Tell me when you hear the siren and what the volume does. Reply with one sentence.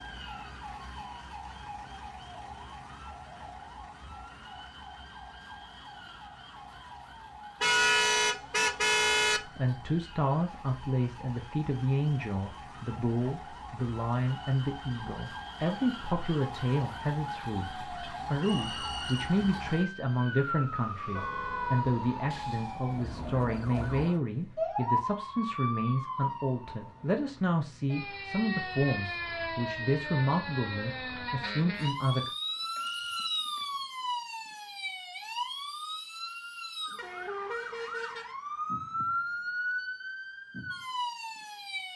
You can hear the siren from 0.0 to 41.9 s, getting louder.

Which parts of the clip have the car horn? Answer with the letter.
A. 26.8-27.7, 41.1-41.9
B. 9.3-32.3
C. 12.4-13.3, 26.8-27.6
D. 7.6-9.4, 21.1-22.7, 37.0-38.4
D.